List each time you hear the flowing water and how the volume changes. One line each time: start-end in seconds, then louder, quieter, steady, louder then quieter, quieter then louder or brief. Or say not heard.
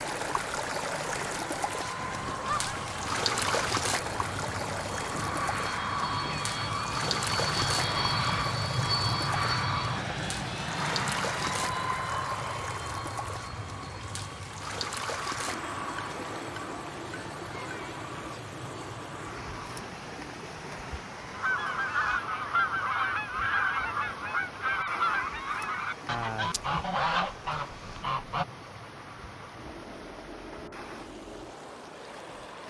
0.0-32.6 quieter.